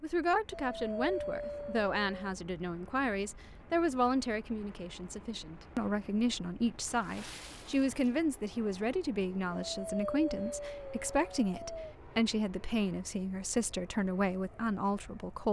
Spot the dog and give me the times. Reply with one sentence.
You can hear the dog from 0.5 to 2.4 s and from 9.5 to 11.9 s.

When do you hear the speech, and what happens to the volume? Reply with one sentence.
The speech can be heard from 0.0 to 15.4 s, at a steady volume.